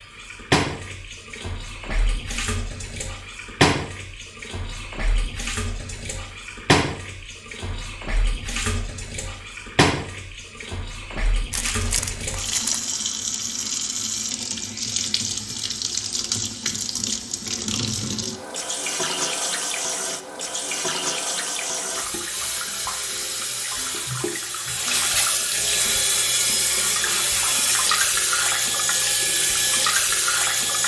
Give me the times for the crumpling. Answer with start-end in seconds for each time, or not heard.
11.5-12.9.